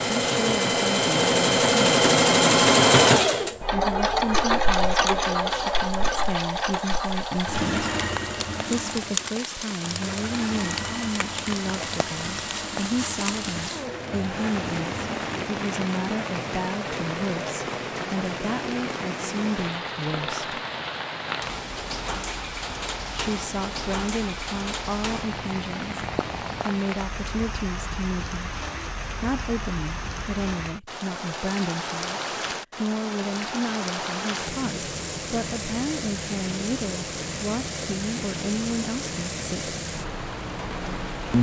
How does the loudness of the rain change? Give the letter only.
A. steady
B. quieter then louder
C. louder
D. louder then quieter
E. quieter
A.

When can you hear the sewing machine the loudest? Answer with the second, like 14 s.
3 s.